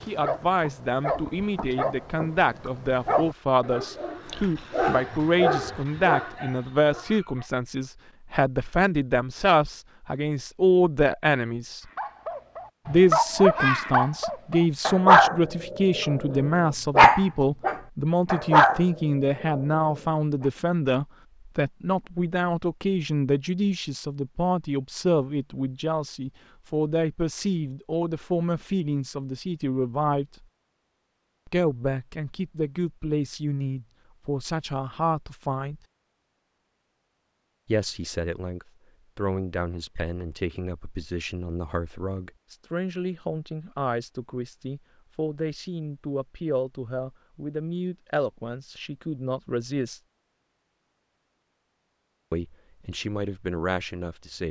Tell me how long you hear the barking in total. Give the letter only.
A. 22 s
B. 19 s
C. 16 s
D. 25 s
C.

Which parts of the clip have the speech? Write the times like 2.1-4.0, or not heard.
0.0-11.8, 12.8-30.4, 31.4-35.8, 37.6-50.0, 52.3-54.4.